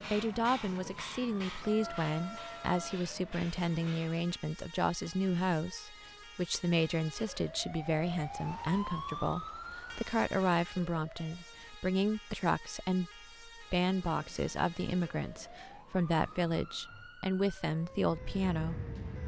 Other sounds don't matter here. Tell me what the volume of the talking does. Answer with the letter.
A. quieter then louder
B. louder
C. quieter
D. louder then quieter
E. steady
E.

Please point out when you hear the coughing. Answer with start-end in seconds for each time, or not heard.
not heard.